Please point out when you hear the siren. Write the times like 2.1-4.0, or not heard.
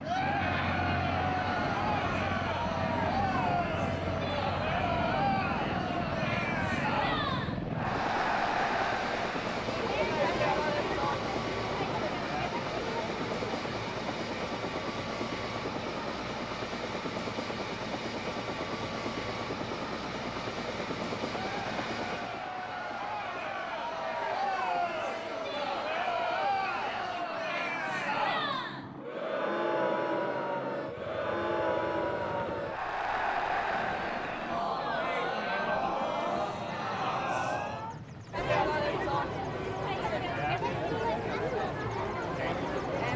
not heard.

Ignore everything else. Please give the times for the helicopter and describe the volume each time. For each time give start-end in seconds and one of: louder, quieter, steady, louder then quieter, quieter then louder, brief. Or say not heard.
0.0-42.9 quieter.